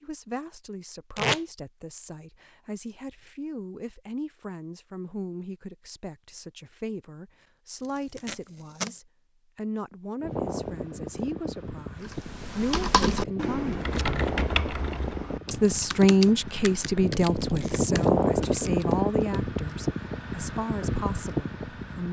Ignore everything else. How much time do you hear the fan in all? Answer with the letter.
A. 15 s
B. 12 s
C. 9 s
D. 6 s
B.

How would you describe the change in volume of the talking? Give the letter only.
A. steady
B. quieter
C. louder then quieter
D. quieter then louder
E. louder
C.